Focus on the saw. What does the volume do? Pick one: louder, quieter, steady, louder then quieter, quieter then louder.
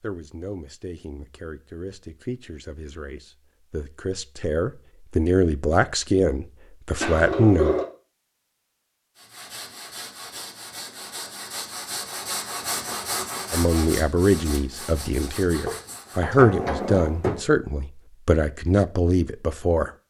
louder then quieter.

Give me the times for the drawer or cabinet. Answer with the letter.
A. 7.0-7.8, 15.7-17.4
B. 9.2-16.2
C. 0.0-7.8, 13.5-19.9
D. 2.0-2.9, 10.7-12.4
A.